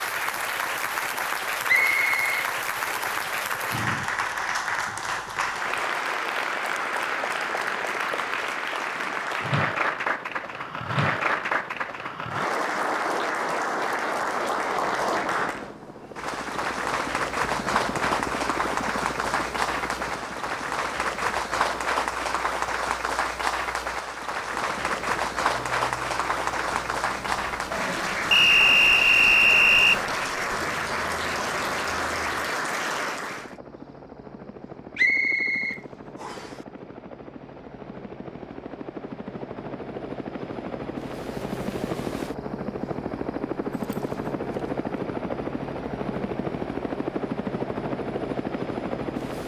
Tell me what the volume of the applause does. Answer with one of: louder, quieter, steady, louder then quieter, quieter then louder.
steady.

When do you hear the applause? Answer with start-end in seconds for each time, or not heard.
0.0-33.5.